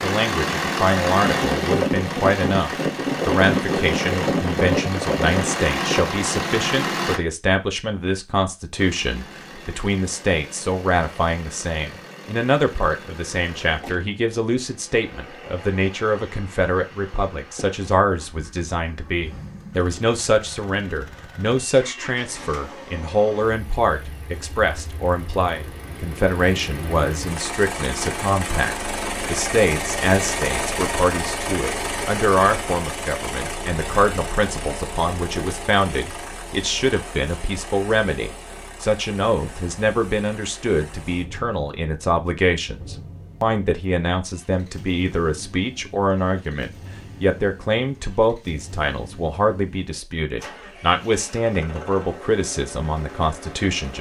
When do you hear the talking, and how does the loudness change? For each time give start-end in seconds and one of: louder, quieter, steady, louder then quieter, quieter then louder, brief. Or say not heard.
0.0-53.9 steady.